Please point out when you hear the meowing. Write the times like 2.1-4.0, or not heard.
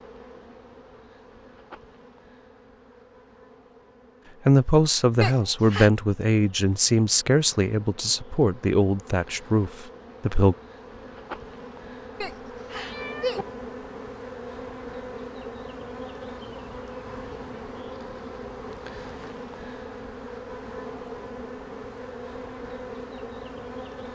5.2-5.9, 12.2-13.4.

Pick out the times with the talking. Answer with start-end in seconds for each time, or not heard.
4.5-10.6.